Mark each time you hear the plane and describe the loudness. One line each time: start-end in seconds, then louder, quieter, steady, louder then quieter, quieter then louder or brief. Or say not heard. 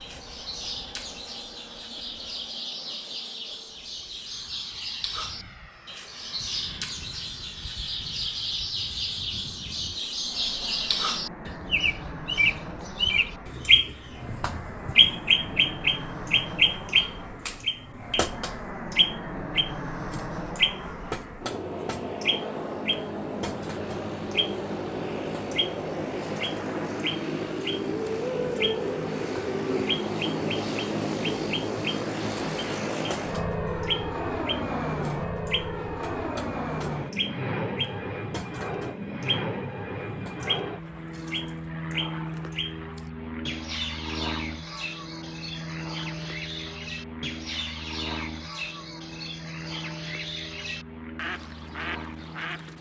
0.0-52.7 louder then quieter.